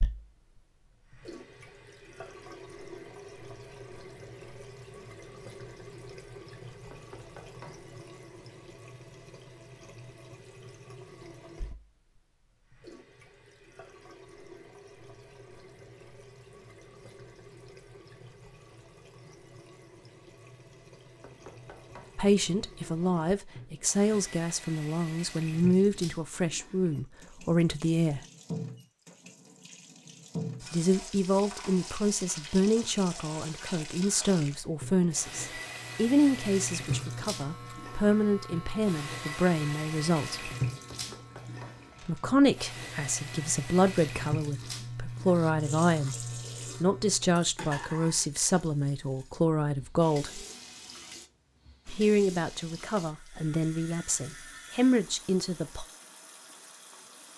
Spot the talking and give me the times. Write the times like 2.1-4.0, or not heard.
22.1-28.2, 30.7-40.5, 42.0-46.1, 46.8-50.5, 51.9-55.9.